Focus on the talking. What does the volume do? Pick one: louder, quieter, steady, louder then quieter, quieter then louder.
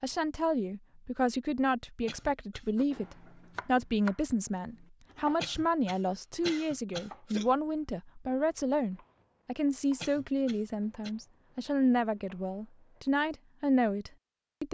steady.